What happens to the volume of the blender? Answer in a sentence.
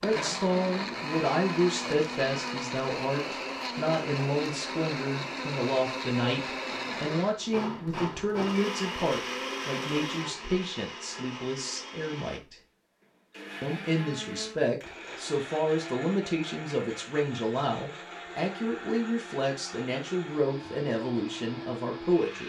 The loudness of the blender goes down.